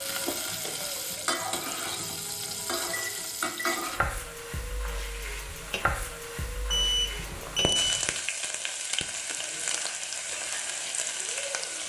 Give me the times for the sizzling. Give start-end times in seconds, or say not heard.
0.0-11.8.